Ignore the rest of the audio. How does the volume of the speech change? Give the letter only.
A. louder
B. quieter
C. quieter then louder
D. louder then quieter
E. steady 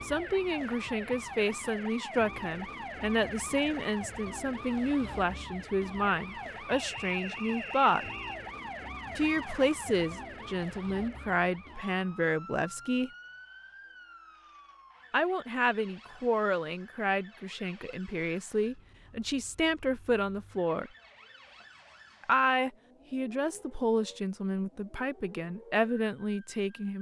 E.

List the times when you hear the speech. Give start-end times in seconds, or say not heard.
0.0-8.1, 9.2-13.1, 15.1-20.9, 22.2-26.9.